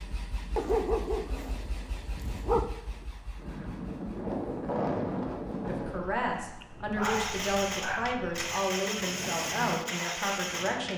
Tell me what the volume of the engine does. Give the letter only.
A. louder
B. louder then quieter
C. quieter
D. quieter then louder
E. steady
D.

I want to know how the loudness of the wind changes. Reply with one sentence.
The volume of the wind goes up, then down.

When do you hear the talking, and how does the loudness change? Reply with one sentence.
The talking can be heard from 5.7 to 10.9 s, at a steady volume.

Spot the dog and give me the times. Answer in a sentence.
The dog can be heard from 0.6 to 2.6 s and from 5.8 to 8.2 s.